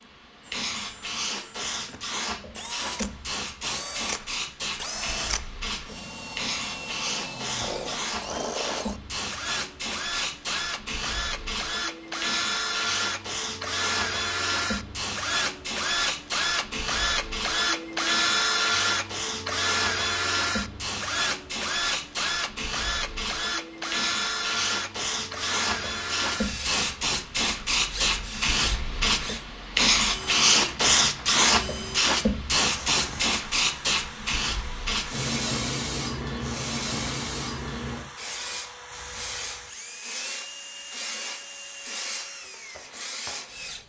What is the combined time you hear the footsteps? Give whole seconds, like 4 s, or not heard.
not heard.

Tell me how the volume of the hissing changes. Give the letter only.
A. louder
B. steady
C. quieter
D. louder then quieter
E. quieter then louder
D.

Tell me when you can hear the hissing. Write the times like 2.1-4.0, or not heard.
0.0-43.7.